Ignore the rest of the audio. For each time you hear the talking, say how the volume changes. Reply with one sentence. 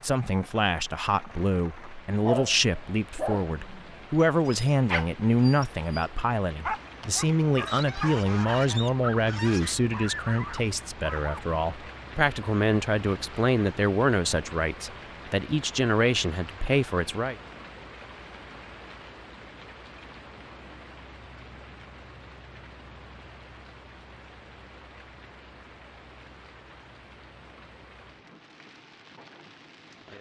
The talking can be heard from 0.0 to 17.4 s, at a steady volume.